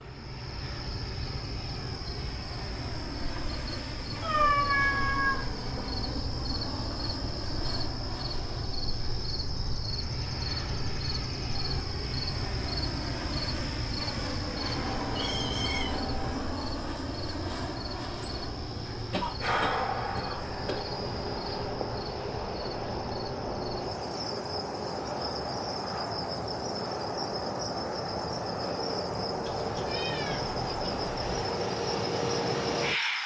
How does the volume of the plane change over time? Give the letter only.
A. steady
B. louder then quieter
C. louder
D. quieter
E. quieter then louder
C.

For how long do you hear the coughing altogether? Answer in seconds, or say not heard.
2 s.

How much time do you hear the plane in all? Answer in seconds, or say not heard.
33 s.